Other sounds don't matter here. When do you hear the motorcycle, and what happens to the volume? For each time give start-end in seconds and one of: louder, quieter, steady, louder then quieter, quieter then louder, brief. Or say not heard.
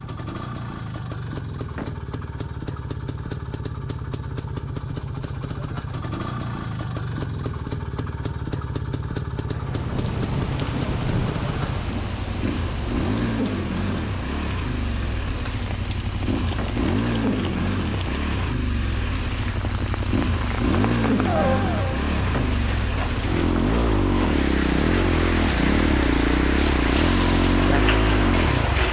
0.0-28.8 louder.